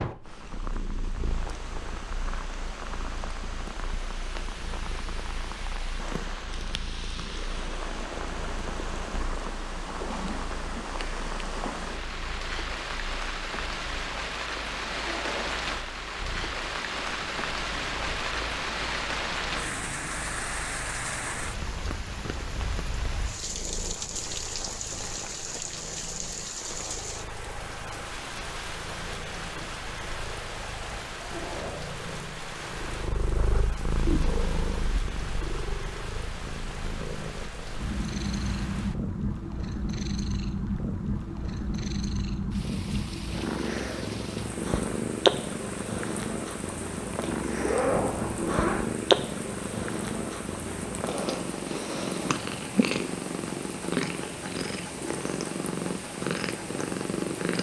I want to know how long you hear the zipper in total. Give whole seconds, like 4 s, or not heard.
3 s.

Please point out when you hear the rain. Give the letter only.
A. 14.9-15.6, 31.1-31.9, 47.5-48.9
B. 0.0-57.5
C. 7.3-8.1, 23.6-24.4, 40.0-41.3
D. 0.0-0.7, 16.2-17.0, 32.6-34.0
B.